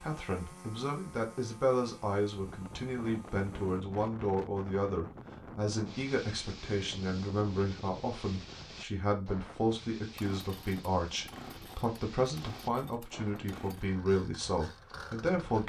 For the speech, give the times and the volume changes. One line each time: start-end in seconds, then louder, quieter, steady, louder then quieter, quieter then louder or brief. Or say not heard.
0.0-15.6 steady.